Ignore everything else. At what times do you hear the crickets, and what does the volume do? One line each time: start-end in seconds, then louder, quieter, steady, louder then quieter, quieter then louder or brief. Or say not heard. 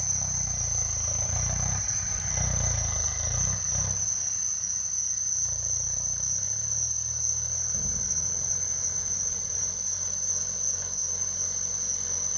0.0-12.3 steady.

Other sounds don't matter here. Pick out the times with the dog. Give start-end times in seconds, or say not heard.
not heard.